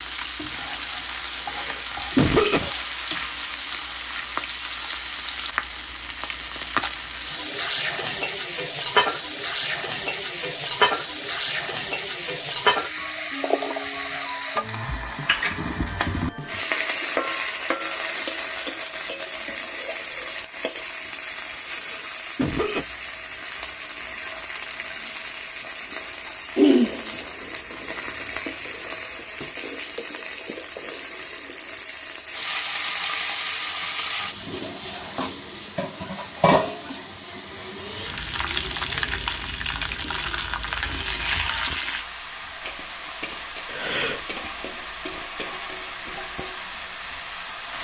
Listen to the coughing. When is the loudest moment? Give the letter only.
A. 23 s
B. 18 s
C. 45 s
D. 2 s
D.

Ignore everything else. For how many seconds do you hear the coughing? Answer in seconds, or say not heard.
3 s.